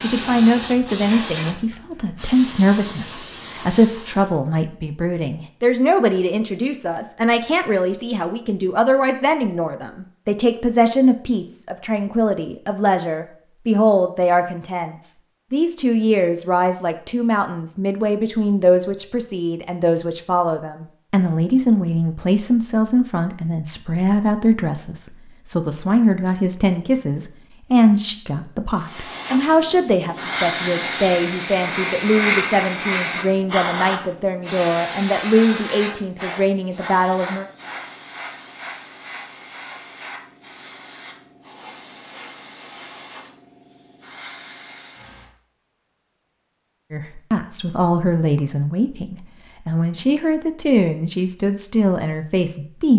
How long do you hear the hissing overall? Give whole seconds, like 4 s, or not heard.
21 s.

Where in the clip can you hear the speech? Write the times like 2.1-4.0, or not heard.
0.0-37.5, 46.9-52.9.